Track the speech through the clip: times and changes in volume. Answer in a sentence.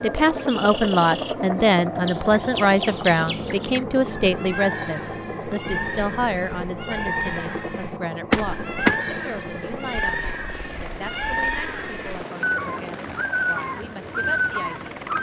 The speech can be heard from 0.0 to 14.9 s, getting quieter.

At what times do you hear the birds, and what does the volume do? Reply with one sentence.
The birds can be heard from 0.0 to 15.1 s, getting louder.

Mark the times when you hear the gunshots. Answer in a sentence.
The gunshots can be heard from 8.3 to 9.1 s.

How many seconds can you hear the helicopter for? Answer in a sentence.
You can hear the helicopter for 15 seconds altogether.